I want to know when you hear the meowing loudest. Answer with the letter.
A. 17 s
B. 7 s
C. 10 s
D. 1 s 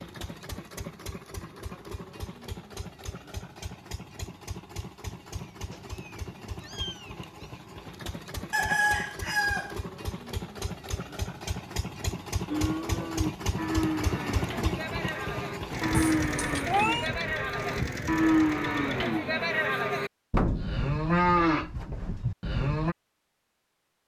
A.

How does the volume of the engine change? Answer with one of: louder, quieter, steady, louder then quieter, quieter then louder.
louder.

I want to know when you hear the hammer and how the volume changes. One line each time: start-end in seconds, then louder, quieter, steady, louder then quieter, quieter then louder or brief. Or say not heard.
not heard.